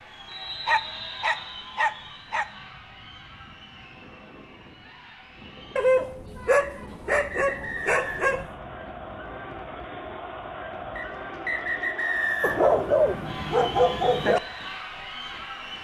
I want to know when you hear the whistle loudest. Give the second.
12 s.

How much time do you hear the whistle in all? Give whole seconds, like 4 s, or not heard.
5 s.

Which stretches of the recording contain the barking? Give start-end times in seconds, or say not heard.
0.7-2.5, 5.8-8.5, 12.4-14.4.